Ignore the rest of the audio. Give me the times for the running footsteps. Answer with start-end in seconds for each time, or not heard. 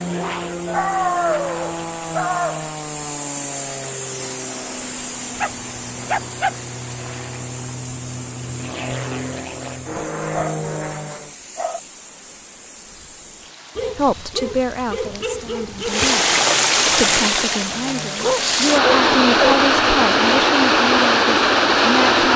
not heard.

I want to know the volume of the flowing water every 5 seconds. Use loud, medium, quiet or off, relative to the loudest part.
quiet, quiet, quiet, loud, loud.